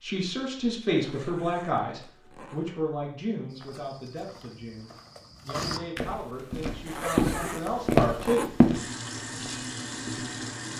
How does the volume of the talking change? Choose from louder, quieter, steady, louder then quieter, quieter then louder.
quieter then louder.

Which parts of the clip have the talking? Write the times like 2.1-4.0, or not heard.
0.0-8.5.